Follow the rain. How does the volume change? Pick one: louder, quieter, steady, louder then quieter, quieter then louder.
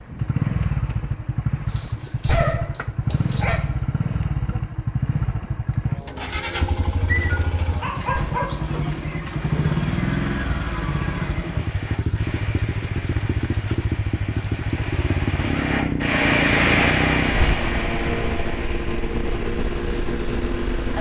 louder then quieter.